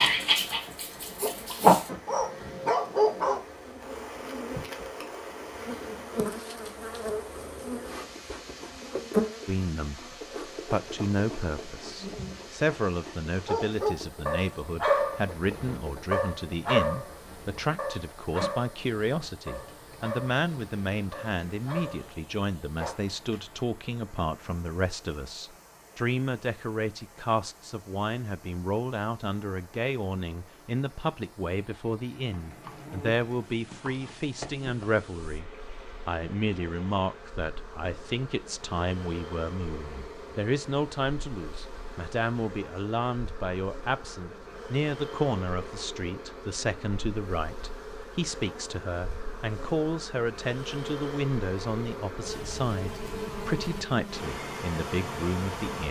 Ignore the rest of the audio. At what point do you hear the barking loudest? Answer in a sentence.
The loudest moment of the barking is at 2 seconds.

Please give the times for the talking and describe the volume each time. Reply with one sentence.
You can hear the talking from 9.4 to 55.8 s, at a steady volume.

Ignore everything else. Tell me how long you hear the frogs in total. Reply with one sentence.
You can't hear the frogs here.